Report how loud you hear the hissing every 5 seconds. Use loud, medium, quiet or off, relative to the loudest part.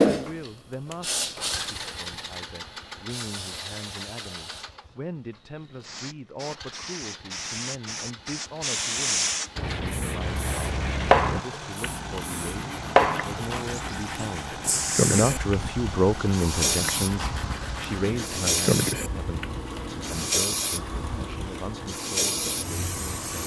medium, medium, loud, medium, medium.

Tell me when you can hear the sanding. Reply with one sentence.
The sanding can be heard from 9.6 to 20.3 s.